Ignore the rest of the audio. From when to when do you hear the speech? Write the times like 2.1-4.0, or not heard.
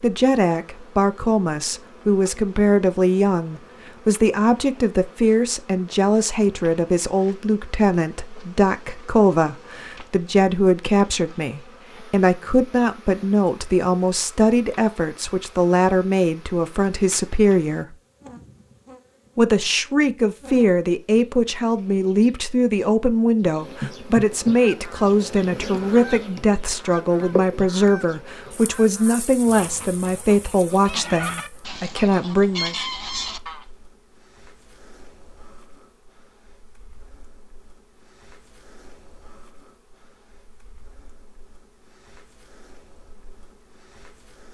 0.0-17.9, 19.4-32.9.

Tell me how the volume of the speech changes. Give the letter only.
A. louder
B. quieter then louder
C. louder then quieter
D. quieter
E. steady
E.